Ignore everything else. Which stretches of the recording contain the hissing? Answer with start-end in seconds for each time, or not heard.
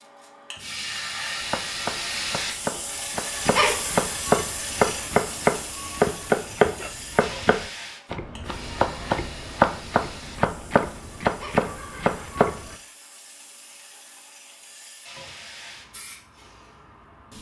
0.0-17.3.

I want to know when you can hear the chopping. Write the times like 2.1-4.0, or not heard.
1.4-12.8.